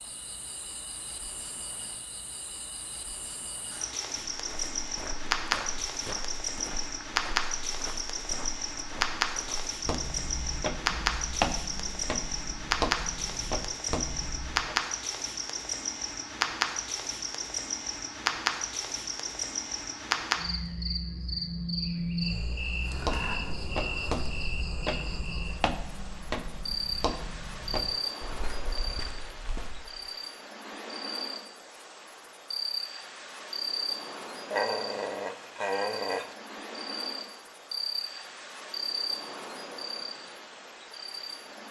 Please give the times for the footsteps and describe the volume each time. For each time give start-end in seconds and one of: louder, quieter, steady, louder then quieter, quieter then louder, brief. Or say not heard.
4.3-14.8 louder
22.9-30.1 quieter.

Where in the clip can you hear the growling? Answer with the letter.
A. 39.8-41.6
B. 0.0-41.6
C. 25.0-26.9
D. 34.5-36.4
D.